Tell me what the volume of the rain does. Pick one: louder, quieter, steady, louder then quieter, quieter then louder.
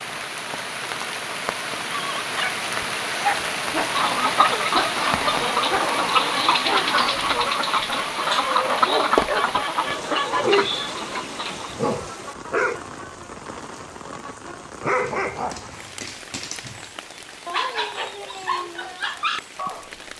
quieter.